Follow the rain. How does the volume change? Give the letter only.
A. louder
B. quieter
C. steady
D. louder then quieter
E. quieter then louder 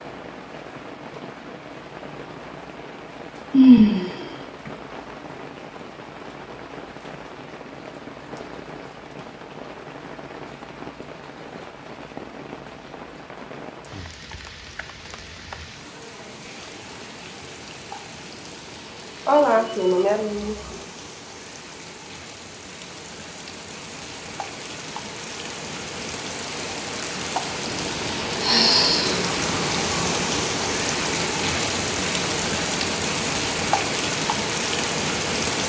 A.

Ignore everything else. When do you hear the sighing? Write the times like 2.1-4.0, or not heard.
3.5-4.7, 19.2-20.8, 28.4-29.2.